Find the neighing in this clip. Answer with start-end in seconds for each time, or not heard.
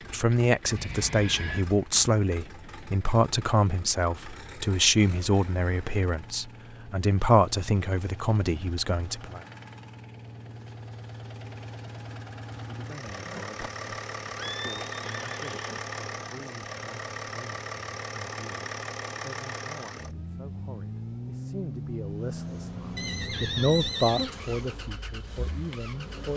0.8-1.6, 13.1-15.8, 22.9-24.4.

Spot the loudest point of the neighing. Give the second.
24 s.